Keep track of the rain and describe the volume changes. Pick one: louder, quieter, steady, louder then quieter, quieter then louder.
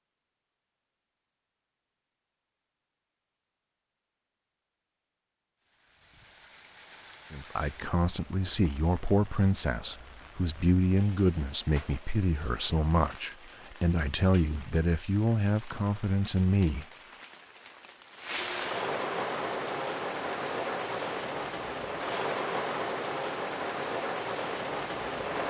louder.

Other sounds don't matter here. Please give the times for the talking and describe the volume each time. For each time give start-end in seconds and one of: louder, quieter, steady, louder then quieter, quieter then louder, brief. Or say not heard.
7.3-16.9 steady.